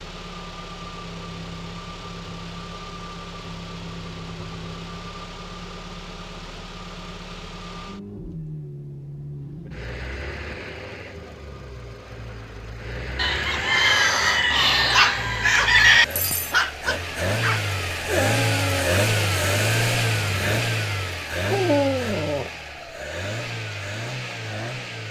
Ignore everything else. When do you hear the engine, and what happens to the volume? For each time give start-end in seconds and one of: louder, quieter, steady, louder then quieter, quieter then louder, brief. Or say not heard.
0.0-25.0 louder.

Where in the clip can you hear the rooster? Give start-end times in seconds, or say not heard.
13.2-16.1.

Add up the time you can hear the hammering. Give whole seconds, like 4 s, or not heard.
not heard.